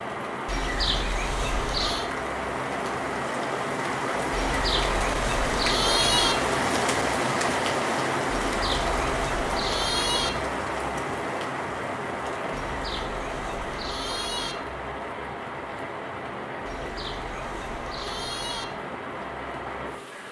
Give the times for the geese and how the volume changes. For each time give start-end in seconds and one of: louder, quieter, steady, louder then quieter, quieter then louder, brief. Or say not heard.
not heard.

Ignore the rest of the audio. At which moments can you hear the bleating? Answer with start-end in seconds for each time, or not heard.
0.5-2.0, 4.3-6.3, 8.4-10.3, 12.5-14.6, 16.6-18.6.